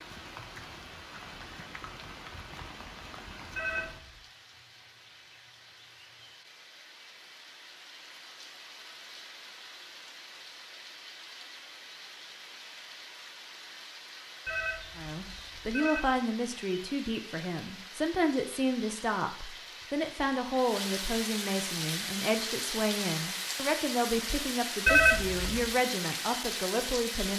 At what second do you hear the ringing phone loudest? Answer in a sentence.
The loudest moment of the ringing phone is at 25 seconds.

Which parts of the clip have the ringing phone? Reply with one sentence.
The ringing phone can be heard from 3.5 to 4.2 s, from 14.4 to 16.1 s and from 24.9 to 25.8 s.